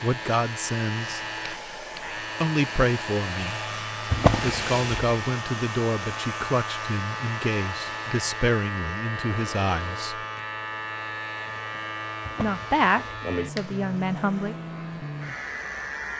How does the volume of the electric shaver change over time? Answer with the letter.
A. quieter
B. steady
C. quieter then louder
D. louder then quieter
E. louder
B.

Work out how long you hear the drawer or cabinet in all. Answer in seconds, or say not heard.
2 s.